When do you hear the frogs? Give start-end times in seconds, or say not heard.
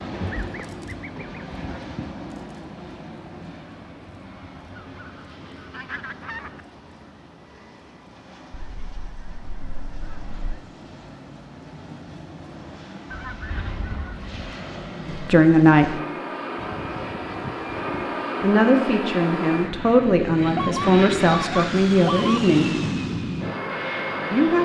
not heard.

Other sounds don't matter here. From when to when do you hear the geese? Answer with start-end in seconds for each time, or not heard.
0.1-2.1, 4.8-6.6, 8.5-10.7, 13.1-14.3, 16.6-18.2, 20.6-22.4.